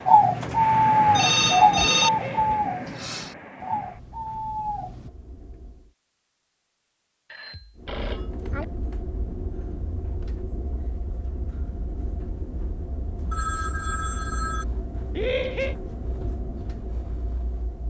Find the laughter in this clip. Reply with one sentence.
You can hear the laughter from 1.8 to 2.6 s and from 15.2 to 15.8 s.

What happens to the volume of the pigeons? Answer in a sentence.
The loudness of the pigeons goes down.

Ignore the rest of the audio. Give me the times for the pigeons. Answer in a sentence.
You can hear the pigeons from 0.1 to 5.1 s.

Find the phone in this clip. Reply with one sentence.
The phone can be heard from 1.1 to 2.1 s, from 7.3 to 8.7 s and from 13.3 to 14.7 s.